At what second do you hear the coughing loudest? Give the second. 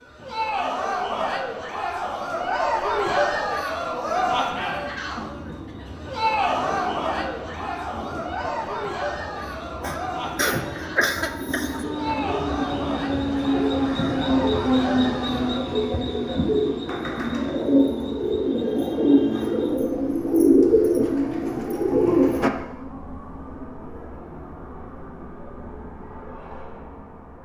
11 s.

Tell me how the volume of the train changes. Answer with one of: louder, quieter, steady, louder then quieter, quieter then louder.
louder then quieter.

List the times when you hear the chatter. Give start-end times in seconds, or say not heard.
0.1-15.7.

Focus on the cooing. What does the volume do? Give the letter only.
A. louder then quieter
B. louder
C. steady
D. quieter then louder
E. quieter
B.